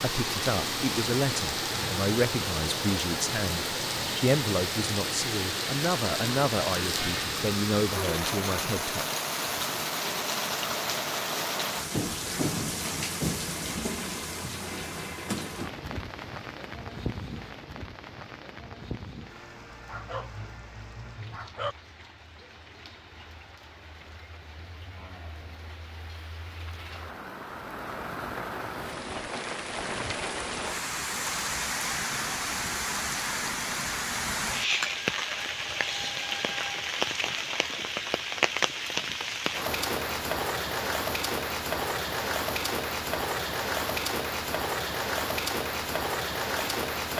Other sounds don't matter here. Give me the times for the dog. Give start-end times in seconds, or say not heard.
19.9-21.8.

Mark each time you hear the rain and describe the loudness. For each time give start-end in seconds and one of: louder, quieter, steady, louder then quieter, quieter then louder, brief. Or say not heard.
0.0-47.1 quieter then louder.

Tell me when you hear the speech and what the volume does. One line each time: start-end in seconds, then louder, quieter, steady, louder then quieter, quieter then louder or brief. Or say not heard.
0.0-9.2 steady.